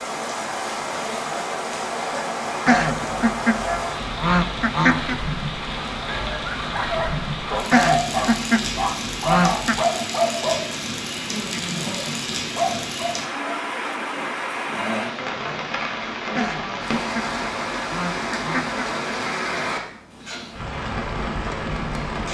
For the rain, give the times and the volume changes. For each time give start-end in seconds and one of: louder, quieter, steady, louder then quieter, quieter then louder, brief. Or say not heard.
0.0-22.3 steady.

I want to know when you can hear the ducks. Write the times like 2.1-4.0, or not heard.
2.6-5.2, 7.7-9.8, 16.4-18.9.